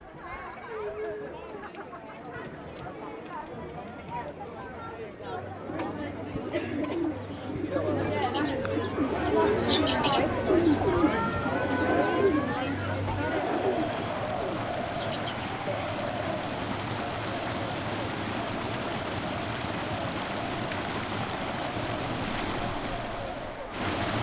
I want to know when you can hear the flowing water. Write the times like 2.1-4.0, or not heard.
9.0-24.1.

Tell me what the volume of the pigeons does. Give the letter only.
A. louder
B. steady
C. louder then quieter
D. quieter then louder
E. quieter
C.